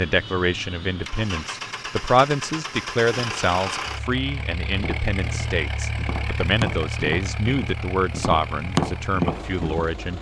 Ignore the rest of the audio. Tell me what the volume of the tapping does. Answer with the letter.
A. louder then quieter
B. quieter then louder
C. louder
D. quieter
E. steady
C.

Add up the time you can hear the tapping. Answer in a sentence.
You can hear the tapping for 5 seconds altogether.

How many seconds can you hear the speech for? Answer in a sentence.
The speech can be heard for 10 seconds in total.